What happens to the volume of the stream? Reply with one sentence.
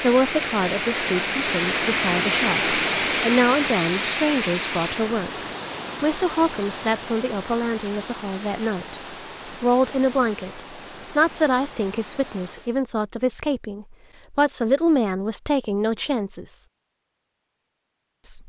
The volume of the stream goes down.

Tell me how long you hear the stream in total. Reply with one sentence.
You can hear the stream for 13 seconds altogether.